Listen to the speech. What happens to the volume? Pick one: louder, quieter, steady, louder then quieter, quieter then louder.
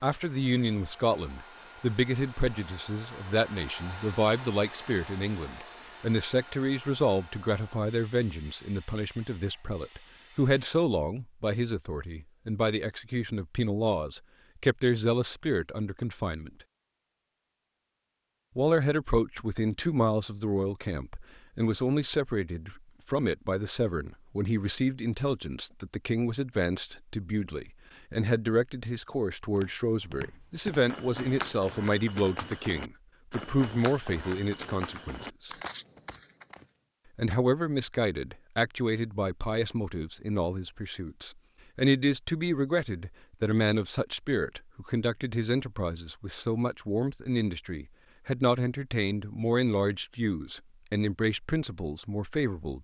steady.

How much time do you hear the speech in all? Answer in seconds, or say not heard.
49 s.